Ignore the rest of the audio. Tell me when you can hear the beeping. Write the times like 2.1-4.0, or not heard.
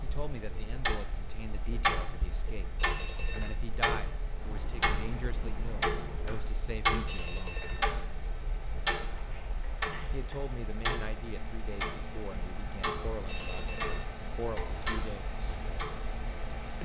2.8-3.5, 7.0-7.8, 13.2-14.1.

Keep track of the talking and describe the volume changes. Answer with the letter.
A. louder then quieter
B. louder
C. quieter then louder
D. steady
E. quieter
D.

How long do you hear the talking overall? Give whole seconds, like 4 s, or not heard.
13 s.